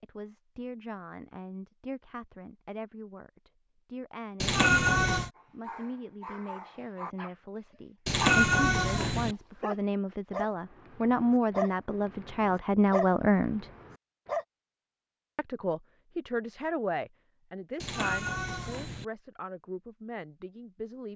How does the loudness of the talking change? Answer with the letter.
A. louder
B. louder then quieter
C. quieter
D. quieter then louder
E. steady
B.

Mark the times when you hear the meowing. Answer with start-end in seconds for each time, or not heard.
4.4-5.3, 8.1-9.3, 17.8-19.1.